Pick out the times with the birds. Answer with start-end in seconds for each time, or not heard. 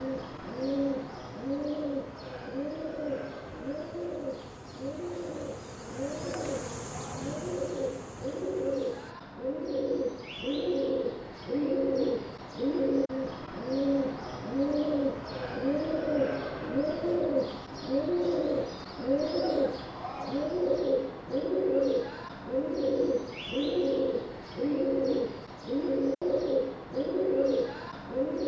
0.0-28.4.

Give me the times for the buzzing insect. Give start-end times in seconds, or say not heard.
0.2-9.2.